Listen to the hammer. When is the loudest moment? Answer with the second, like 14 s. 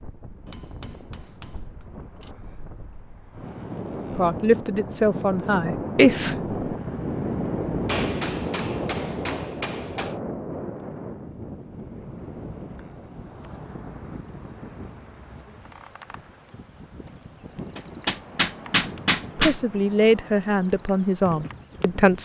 19 s.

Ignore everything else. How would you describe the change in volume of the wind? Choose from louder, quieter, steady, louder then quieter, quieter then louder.
louder then quieter.